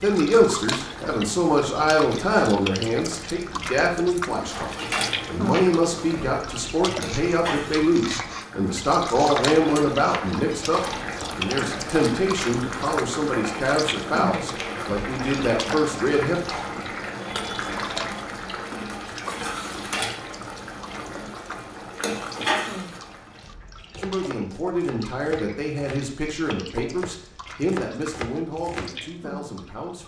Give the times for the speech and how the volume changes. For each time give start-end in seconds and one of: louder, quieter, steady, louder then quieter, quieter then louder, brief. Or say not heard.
0.0-16.4 steady
24.0-30.0 quieter.